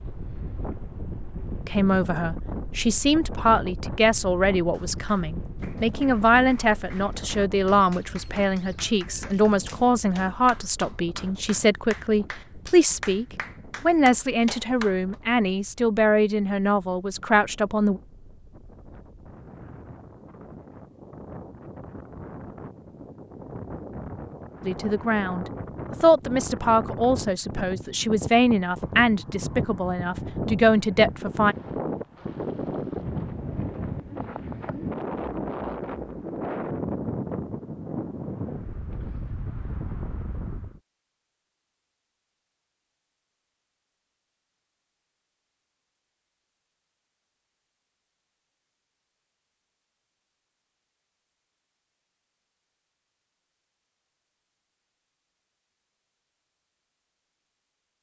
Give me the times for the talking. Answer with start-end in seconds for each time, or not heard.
1.6-18.0, 24.6-31.6.